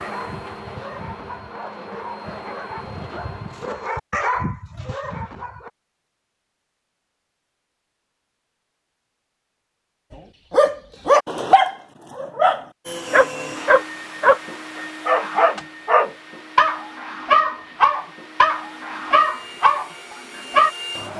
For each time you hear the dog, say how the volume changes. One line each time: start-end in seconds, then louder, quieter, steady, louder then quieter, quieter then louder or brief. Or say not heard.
0.0-5.7 louder
10.5-20.7 steady.